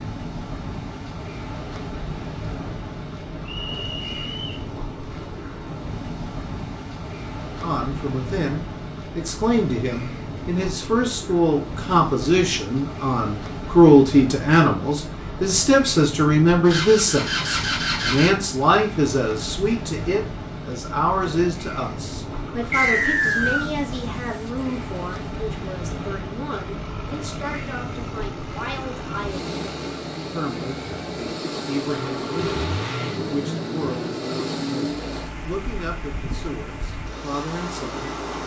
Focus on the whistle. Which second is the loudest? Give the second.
23 s.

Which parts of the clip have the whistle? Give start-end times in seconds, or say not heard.
3.5-4.7, 22.7-23.7.